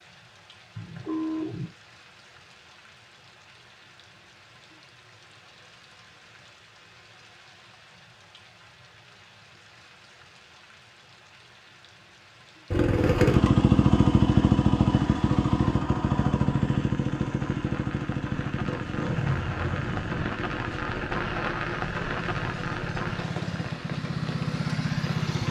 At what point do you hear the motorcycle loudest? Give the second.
14 s.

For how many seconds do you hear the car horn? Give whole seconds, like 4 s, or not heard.
2 s.